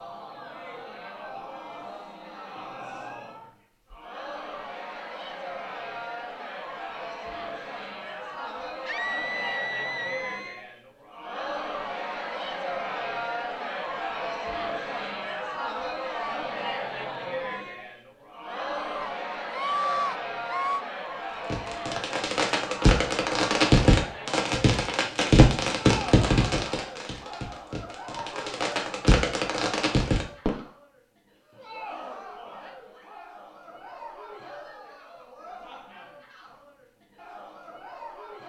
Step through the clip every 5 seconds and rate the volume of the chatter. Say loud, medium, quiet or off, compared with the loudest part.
medium, loud, loud, loud, loud, medium, medium, quiet.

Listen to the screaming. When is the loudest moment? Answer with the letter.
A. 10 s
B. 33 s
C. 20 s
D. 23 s
C.